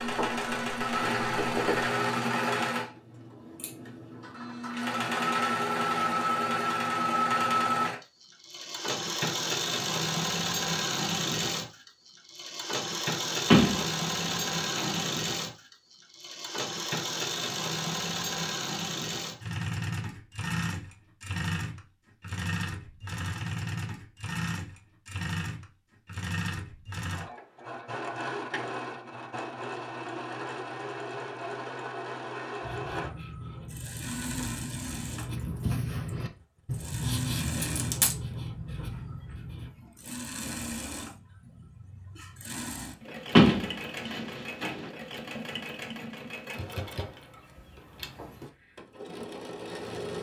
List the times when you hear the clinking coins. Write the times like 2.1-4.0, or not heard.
37.6-38.1.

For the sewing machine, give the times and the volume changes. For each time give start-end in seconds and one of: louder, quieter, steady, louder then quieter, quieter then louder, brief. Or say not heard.
0.0-50.1 quieter.